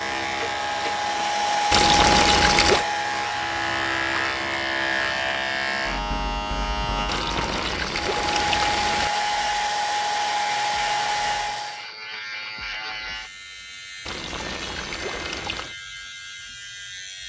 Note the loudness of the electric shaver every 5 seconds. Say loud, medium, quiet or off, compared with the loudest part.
loud, loud, medium, medium.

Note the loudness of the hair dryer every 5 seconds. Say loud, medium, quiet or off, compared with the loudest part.
loud, loud, loud, off.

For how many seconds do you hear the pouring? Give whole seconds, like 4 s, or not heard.
5 s.